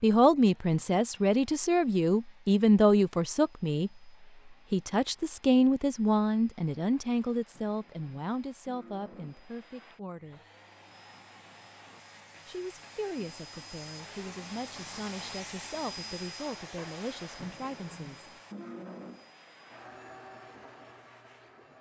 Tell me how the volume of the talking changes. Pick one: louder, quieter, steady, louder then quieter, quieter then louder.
quieter.